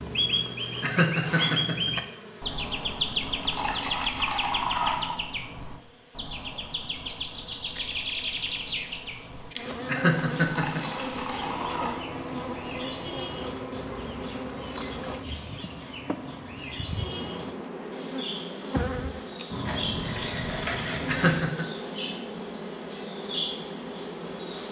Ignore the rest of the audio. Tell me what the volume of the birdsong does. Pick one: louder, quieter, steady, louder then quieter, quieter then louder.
quieter.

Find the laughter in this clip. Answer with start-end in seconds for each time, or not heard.
0.8-1.9, 9.8-10.8, 21.1-21.6.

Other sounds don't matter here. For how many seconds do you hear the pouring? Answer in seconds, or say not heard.
6 s.